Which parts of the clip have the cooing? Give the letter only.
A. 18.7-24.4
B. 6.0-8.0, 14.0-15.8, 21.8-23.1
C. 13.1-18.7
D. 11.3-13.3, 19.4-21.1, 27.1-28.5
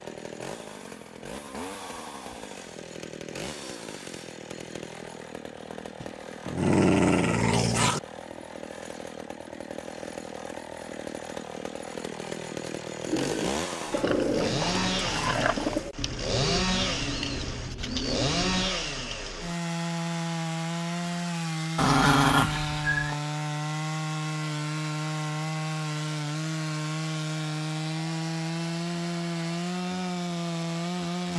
C.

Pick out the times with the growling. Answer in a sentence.
The growling can be heard from 6.0 to 8.0 s, from 14.0 to 15.8 s and from 21.8 to 23.1 s.